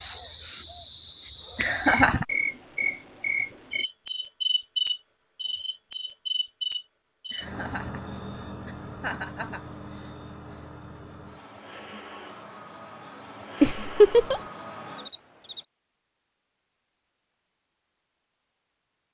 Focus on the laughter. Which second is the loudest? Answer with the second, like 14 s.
14 s.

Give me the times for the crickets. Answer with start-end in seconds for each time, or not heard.
0.0-15.7.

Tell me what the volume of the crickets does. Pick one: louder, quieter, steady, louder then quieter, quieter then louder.
quieter.